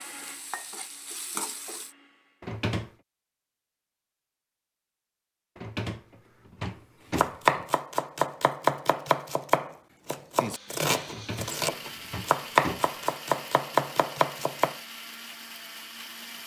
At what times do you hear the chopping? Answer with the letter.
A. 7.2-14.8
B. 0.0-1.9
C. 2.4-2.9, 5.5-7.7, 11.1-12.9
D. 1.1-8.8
A.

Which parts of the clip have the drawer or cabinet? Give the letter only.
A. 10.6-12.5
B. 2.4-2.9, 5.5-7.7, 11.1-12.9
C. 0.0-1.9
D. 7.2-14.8
B.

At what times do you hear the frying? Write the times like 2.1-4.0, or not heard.
0.0-1.9.